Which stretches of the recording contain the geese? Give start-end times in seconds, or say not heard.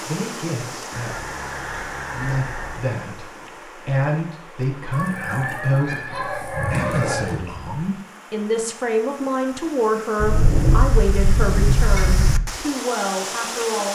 0.9-2.9, 4.9-7.4, 10.2-12.4.